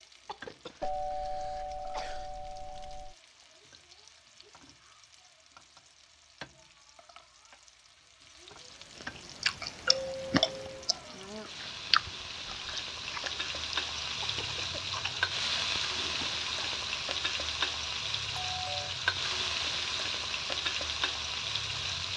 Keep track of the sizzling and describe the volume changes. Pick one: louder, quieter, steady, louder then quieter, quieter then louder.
louder.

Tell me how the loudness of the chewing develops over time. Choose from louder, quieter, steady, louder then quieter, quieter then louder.
quieter.